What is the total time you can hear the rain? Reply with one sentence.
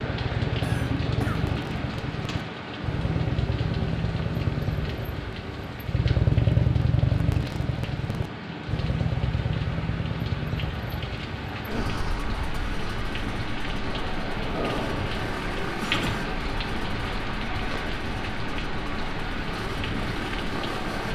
The rain can be heard for 21 seconds in total.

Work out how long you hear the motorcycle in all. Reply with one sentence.
The motorcycle can be heard for 21 seconds in total.